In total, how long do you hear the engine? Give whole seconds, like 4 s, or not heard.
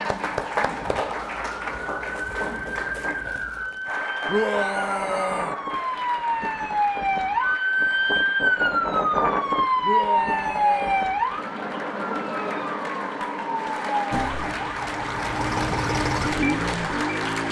3 s.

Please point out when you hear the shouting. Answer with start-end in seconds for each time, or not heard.
4.2-5.5, 9.8-11.1.